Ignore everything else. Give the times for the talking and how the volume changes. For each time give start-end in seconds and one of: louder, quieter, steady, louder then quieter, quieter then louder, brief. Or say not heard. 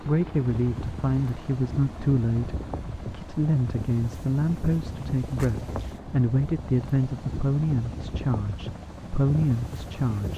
0.0-10.3 steady.